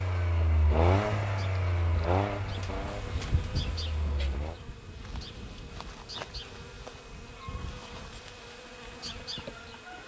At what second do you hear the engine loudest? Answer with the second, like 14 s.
1 s.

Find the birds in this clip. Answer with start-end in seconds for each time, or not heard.
not heard.